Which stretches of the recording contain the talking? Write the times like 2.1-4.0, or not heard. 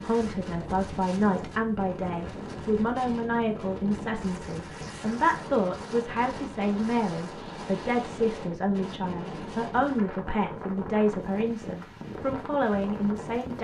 0.0-13.5.